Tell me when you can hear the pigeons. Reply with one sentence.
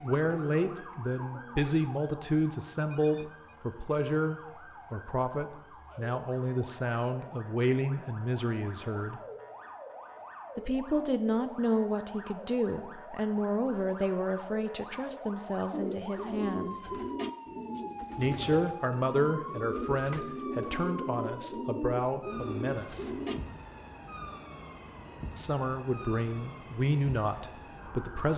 The pigeons can be heard from 0.0 to 1.8 s and from 15.7 to 23.4 s.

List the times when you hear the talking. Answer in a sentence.
The talking can be heard from 0.0 to 9.2 s, from 10.6 to 16.9 s, from 18.1 to 23.1 s and from 25.4 to 28.3 s.